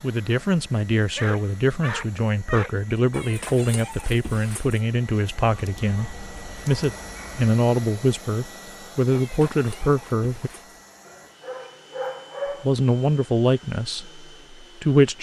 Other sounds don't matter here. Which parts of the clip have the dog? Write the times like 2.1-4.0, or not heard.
1.0-2.8, 5.5-7.5, 11.1-12.7.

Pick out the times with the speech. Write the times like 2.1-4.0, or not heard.
0.0-10.5, 12.6-15.1.